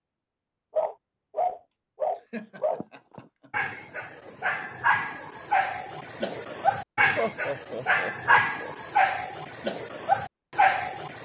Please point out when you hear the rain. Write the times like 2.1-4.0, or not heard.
not heard.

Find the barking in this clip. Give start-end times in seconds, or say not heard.
0.8-11.2.